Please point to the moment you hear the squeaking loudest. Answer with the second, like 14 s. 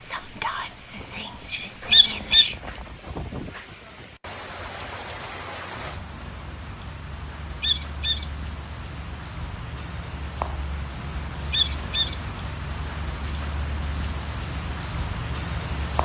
2 s.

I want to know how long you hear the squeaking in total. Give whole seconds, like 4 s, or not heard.
2 s.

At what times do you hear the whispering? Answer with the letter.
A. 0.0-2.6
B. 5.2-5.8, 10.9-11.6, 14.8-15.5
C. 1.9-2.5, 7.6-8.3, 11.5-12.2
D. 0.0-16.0
A.